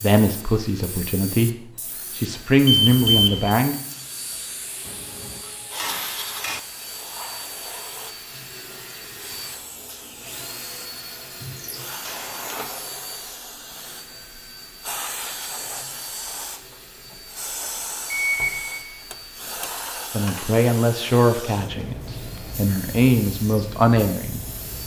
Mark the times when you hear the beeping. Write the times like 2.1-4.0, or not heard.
2.6-3.5, 12.1-12.7, 18.1-18.8.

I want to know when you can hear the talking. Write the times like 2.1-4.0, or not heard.
0.0-3.8, 20.1-24.8.